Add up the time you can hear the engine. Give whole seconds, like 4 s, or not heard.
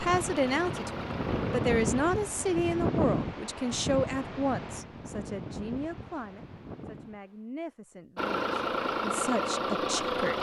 4 s.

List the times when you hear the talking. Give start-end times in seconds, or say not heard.
0.0-10.3.